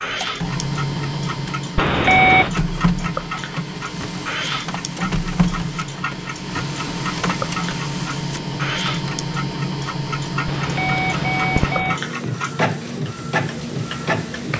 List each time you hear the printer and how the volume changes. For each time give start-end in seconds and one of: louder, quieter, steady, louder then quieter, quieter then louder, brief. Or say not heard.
0.0-14.5 steady.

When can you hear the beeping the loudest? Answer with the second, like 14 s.
2 s.